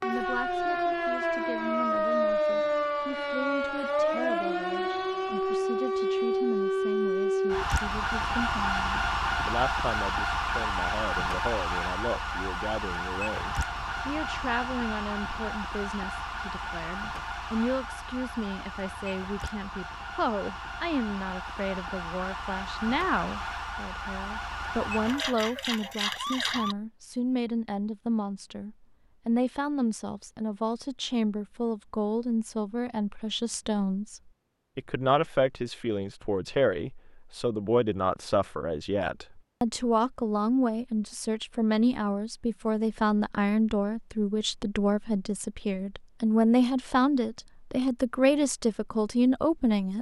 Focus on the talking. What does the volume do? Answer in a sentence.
The loudness of the talking goes up.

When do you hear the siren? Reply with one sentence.
You can hear the siren from 0.0 to 26.8 s.